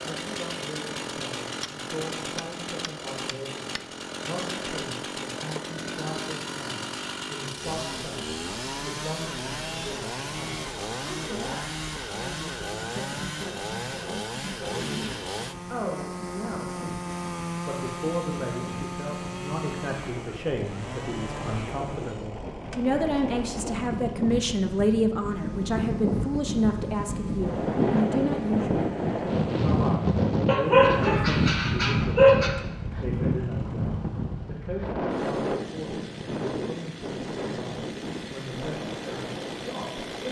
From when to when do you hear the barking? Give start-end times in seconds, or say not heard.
30.4-32.5.